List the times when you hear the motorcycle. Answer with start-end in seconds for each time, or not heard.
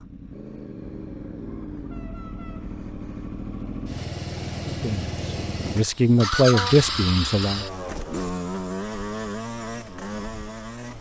0.0-10.9.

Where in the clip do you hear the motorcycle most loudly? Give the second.
7 s.